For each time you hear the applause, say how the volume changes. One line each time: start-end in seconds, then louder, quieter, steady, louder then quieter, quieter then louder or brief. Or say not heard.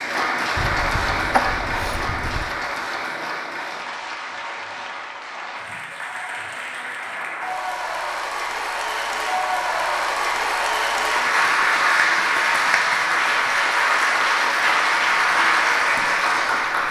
0.0-16.8 quieter then louder.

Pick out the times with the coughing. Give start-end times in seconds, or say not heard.
0.6-2.5.